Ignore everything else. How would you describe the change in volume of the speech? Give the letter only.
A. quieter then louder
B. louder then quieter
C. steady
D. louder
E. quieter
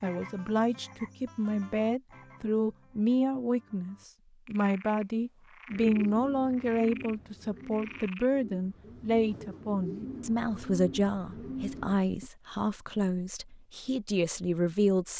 C.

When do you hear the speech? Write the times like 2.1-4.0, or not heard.
0.0-15.1.